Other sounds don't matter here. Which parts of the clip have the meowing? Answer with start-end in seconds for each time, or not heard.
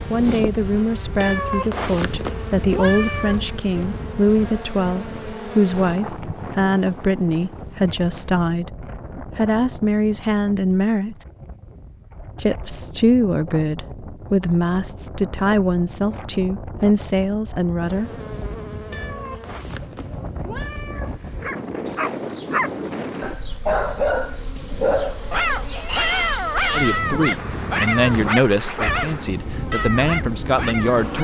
1.2-3.5, 18.9-21.5.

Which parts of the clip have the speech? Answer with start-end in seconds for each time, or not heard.
0.1-11.2, 12.4-18.1, 26.7-31.1.